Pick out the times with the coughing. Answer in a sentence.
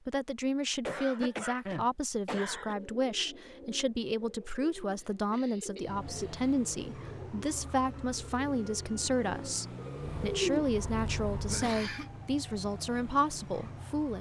You can hear the coughing from 0.8 to 2.8 s, from 5.0 to 6.5 s and from 11.5 to 12.1 s.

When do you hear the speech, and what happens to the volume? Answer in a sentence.
The speech can be heard from 0.1 to 14.1 s, at a steady volume.